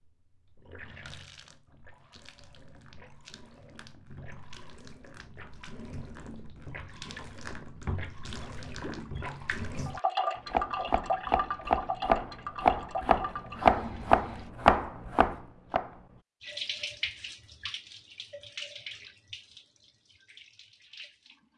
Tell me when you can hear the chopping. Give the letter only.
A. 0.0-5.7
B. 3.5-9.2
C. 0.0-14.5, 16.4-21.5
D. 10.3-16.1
D.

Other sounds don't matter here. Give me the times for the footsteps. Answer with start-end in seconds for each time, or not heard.
not heard.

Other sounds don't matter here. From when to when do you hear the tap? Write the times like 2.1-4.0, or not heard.
0.0-14.5, 16.4-21.5.